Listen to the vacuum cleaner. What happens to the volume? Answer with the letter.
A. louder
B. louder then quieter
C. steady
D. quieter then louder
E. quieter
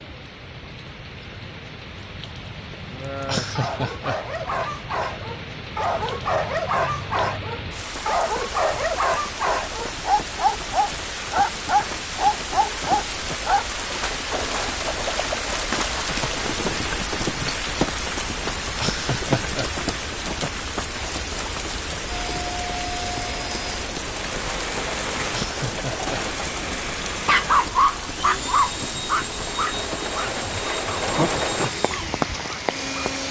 C.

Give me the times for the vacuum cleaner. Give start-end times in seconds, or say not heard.
22.1-33.2.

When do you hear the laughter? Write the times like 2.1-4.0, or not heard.
3.2-4.2, 18.7-19.7, 25.2-26.2.